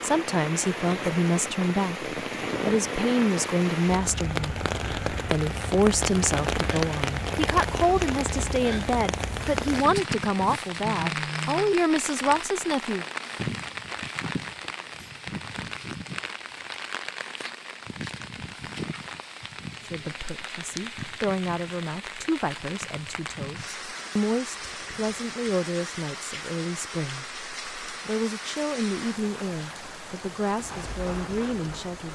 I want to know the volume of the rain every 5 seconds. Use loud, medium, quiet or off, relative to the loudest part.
loud, loud, loud, medium, medium, medium, medium.